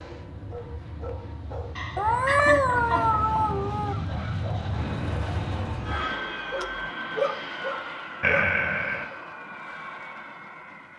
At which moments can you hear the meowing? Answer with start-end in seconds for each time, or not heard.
1.9-4.0, 5.8-6.9.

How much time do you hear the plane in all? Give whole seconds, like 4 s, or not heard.
11 s.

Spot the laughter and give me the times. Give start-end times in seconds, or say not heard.
1.8-3.4, 8.2-9.1.